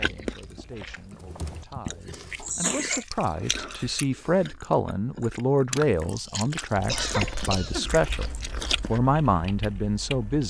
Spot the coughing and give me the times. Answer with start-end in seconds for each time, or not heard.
2.4-3.0, 6.8-8.0.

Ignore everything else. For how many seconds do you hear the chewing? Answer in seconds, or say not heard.
9 s.